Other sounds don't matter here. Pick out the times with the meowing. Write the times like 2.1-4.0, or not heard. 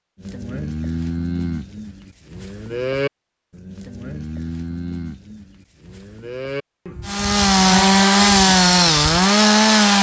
not heard.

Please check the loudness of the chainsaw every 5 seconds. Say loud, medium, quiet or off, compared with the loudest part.
off, loud.